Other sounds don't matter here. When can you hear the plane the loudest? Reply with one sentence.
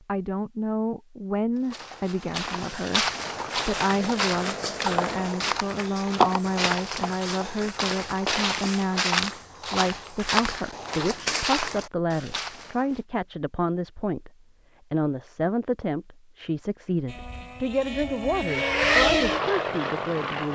The volume of the plane peaks at 19 seconds.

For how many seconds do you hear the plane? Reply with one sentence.
The plane can be heard for 6 seconds in total.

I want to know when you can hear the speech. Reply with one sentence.
You can hear the speech from 0.1 to 14.3 s and from 14.9 to 20.5 s.